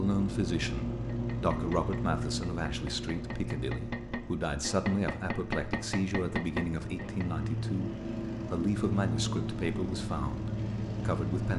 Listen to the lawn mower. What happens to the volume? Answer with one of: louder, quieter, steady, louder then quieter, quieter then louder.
quieter then louder.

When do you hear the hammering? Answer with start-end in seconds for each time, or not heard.
1.1-7.3.